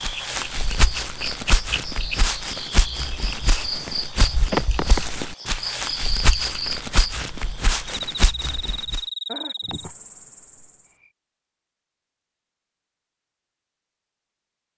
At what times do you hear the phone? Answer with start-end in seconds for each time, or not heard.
not heard.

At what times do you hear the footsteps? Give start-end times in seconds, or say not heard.
0.0-9.0.